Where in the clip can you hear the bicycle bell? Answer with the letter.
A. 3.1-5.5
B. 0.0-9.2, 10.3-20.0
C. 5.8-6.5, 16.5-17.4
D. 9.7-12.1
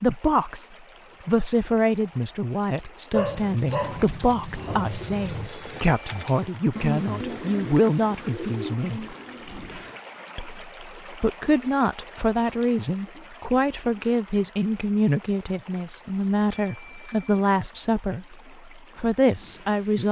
C.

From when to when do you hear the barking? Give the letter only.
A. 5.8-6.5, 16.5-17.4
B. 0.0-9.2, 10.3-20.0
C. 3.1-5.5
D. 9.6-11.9
C.